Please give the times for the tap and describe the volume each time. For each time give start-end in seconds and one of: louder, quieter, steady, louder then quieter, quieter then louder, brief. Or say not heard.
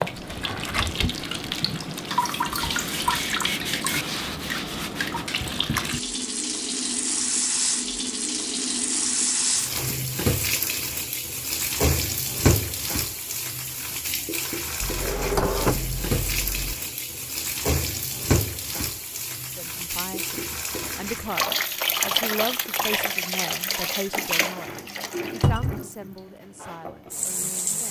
0.0-27.8 steady.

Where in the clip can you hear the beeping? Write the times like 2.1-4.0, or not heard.
not heard.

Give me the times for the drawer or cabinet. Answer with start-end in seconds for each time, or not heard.
0.1-1.1, 14.8-16.8, 25.4-25.8.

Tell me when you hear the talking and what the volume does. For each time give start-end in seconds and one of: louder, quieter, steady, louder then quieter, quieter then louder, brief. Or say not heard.
19.6-27.8 quieter.